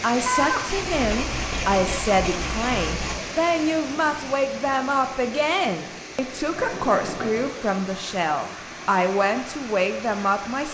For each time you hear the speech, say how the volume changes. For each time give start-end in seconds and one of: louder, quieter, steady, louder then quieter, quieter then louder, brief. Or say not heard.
0.0-10.7 steady.